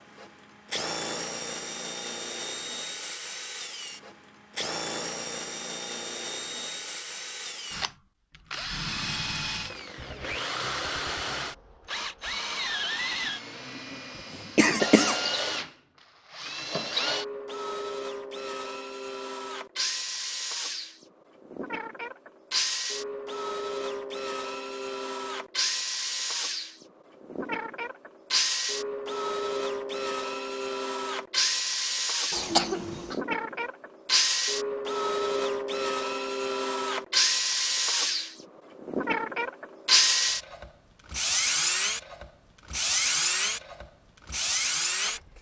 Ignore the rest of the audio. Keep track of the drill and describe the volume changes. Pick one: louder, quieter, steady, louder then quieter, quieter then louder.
louder.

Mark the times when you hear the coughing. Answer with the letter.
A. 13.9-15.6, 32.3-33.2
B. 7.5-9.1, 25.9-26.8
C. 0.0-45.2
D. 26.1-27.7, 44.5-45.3
A.